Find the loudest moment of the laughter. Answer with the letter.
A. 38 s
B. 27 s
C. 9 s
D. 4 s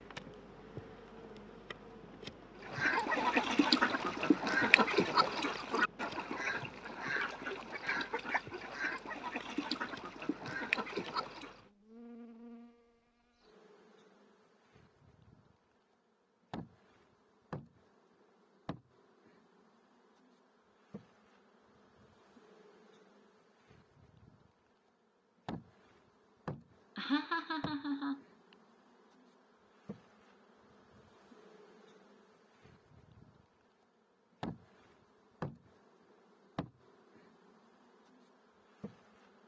B.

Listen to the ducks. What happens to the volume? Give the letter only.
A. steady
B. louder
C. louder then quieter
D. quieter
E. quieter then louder
D.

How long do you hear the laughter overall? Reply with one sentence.
You can hear the laughter for 2 seconds altogether.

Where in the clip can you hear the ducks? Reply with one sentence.
You can hear the ducks from 2.6 to 11.6 s.